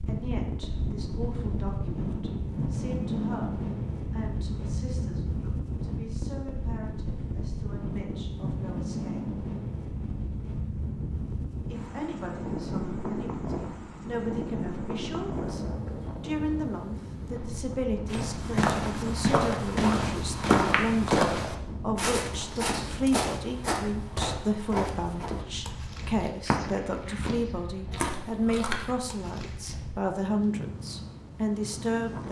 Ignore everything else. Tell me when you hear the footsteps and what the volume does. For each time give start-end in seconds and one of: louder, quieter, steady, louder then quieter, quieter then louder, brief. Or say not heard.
18.1-29.8 quieter.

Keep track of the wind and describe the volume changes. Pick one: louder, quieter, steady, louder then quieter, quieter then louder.
quieter.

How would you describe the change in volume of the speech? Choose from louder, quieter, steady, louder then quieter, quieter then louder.
louder.